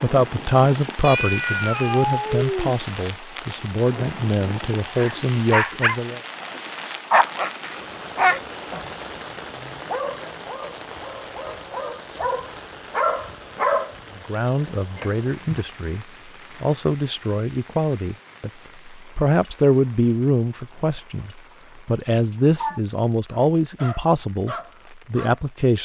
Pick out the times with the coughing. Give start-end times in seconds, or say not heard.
not heard.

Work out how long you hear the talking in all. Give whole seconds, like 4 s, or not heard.
18 s.